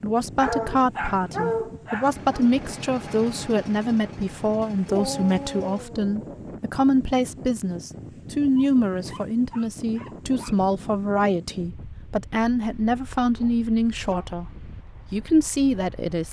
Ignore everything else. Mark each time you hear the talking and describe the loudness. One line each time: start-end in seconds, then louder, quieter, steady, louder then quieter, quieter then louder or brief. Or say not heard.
0.0-14.4 steady
15.1-16.2 brief.